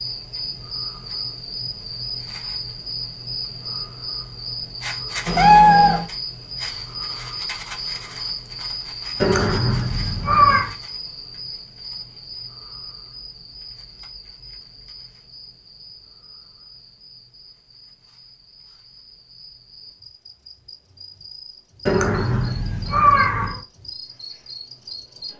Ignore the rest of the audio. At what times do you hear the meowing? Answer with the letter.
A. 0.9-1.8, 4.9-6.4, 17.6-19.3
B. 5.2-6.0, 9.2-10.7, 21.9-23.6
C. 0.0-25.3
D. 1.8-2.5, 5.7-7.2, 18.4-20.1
B.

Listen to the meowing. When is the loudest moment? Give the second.
6 s.